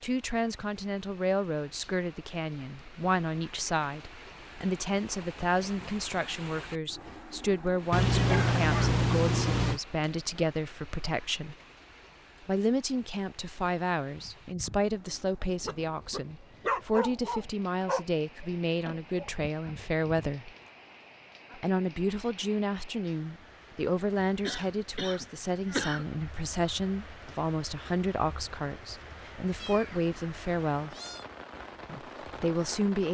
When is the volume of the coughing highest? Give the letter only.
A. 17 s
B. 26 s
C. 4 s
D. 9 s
B.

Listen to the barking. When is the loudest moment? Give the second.
17 s.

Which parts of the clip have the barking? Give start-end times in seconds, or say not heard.
14.2-20.7.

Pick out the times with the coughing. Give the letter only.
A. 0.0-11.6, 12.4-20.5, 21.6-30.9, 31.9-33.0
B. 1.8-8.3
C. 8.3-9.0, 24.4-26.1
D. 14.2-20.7
C.